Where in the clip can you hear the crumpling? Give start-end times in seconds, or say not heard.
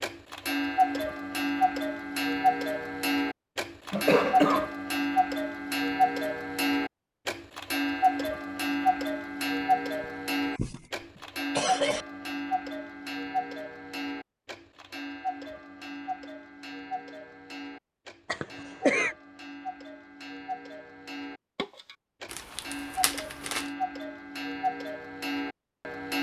22.3-23.7.